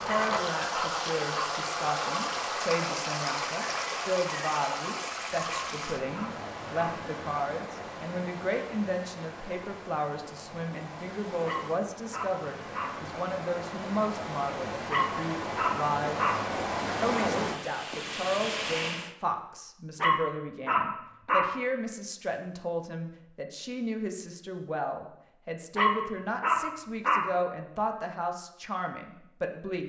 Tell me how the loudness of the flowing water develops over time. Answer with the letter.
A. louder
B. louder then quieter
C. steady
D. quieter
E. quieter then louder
E.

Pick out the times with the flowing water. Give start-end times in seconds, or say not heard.
0.0-19.1.